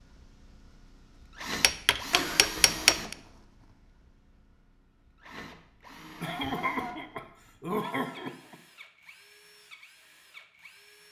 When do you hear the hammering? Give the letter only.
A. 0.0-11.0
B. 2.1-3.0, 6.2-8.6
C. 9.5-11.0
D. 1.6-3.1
D.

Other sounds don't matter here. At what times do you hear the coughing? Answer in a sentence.
You can hear the coughing from 2.1 to 3.0 s and from 6.2 to 8.6 s.